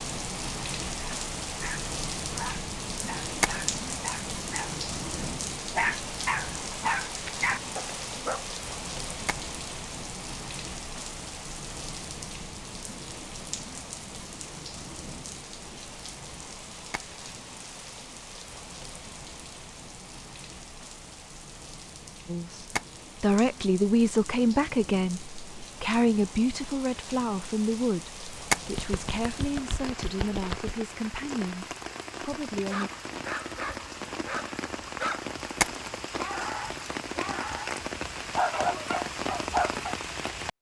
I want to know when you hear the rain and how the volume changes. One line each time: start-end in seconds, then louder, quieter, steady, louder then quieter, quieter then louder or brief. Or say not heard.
0.0-40.5 quieter then louder.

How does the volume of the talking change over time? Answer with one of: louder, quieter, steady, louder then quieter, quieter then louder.
quieter.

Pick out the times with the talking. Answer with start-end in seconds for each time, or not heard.
22.2-32.9.